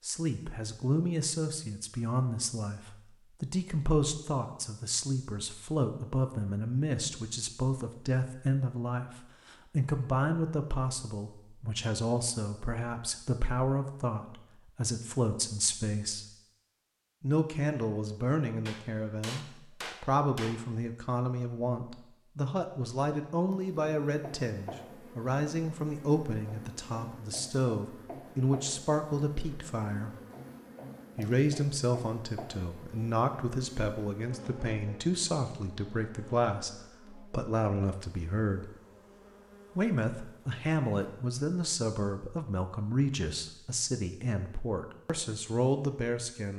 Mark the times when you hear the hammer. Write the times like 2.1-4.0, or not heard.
18.6-20.6.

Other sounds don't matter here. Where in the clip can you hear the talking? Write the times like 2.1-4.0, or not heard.
0.0-9.1, 9.7-16.2, 17.2-30.1, 31.1-38.7, 39.8-46.5.